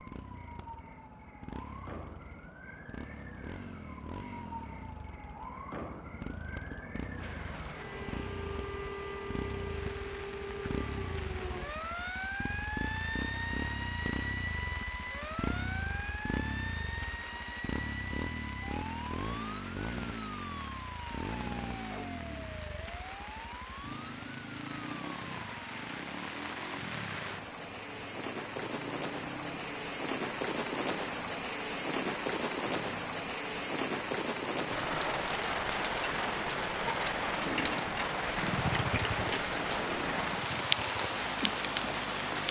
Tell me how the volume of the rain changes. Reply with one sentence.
The loudness of the rain goes up.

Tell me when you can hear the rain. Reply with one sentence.
You can hear the rain from 7.2 to 42.4 s.